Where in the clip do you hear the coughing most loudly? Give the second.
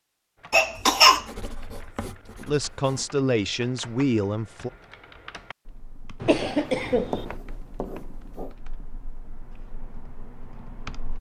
1 s.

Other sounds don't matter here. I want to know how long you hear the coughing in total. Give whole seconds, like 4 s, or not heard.
2 s.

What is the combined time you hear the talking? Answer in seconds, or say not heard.
2 s.